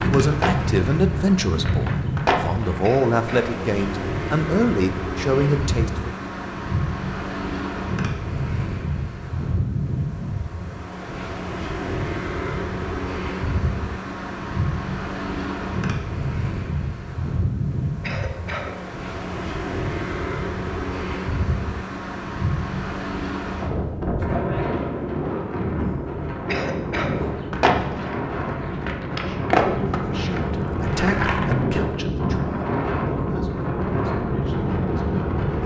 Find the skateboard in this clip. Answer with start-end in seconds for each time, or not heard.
0.0-3.0, 27.4-31.6.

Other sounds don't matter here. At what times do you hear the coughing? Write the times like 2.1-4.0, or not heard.
2.8-3.5, 18.0-18.8, 26.4-27.2.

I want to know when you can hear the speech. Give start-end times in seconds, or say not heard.
0.0-6.1, 29.1-35.4.